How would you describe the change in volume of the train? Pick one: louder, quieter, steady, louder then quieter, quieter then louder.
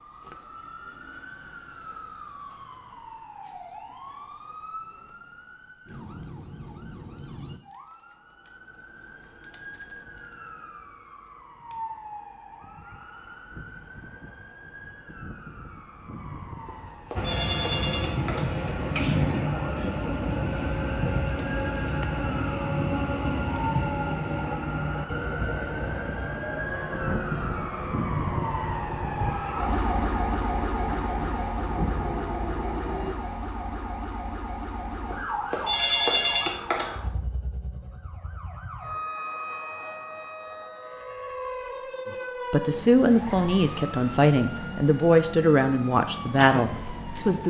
quieter.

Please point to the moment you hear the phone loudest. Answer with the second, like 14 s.
36 s.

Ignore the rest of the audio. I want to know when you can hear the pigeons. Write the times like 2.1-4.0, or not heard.
not heard.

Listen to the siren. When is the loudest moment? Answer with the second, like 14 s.
30 s.